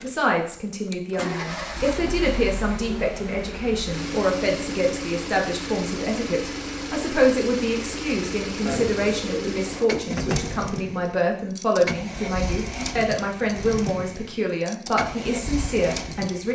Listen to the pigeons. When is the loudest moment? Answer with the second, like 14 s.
9 s.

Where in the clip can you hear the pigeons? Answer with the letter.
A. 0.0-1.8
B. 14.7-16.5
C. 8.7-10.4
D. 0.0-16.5
C.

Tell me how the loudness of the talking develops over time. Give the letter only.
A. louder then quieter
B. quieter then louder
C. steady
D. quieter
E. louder
C.